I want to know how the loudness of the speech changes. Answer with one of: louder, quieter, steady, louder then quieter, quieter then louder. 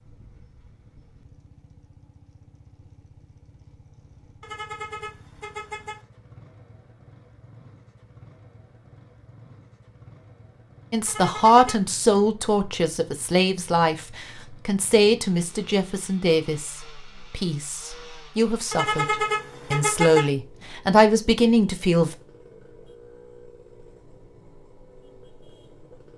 quieter then louder.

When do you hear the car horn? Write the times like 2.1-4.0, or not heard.
4.4-6.0, 11.1-11.9, 18.7-20.3.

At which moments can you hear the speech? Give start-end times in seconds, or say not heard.
10.9-22.1.